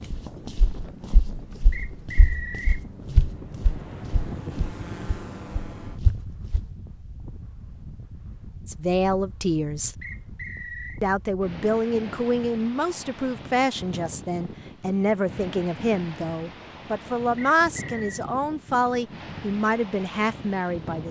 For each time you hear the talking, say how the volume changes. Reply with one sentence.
The talking can be heard briefly from 8.7 to 9.9 s; and from 11.0 to 21.0 s, at a steady volume.